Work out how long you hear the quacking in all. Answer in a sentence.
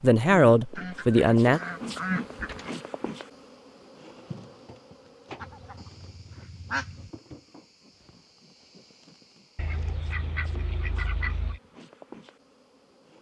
The quacking can be heard for 6 seconds in total.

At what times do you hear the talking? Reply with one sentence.
The talking can be heard from 0.0 to 1.6 s.